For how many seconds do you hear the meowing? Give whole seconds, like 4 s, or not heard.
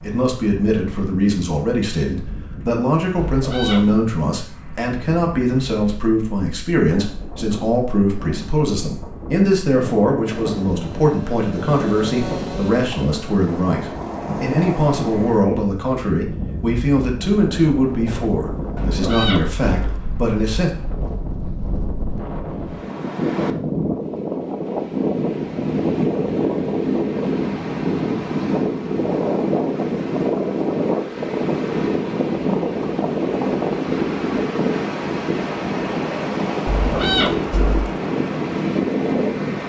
3 s.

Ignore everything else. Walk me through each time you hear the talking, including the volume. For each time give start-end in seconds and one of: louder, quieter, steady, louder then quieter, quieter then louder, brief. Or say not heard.
0.0-20.7 steady.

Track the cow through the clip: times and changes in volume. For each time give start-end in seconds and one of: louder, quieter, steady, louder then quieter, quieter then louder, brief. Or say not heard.
not heard.